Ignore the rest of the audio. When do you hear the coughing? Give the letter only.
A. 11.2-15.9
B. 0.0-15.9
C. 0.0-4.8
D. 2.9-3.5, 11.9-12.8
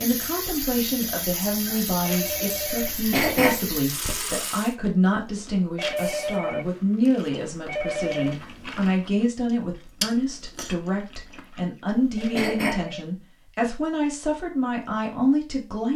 D.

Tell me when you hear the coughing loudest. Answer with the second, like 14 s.
3 s.